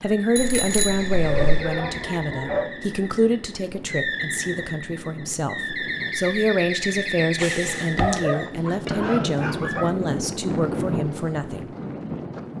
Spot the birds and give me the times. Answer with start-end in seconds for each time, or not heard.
0.0-8.5.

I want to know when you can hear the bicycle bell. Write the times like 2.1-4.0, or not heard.
0.3-1.7, 7.3-8.2.